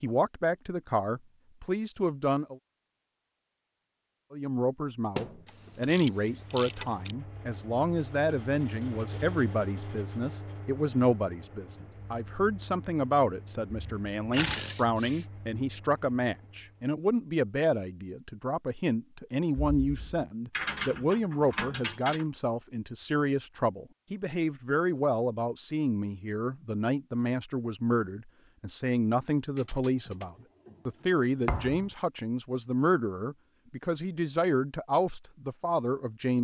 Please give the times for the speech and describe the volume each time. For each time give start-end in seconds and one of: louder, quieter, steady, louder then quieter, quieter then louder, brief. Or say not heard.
0.0-2.6 brief
4.3-36.3 steady.